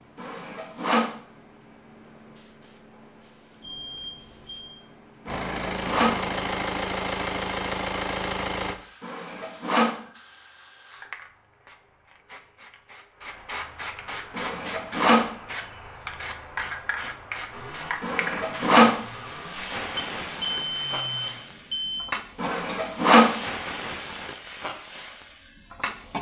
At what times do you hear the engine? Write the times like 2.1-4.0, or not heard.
5.2-8.8, 17.5-21.4.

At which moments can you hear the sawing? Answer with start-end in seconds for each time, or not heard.
0.1-1.1, 5.2-6.2, 9.0-10.0, 14.3-15.3, 18.0-19.0, 22.4-23.4.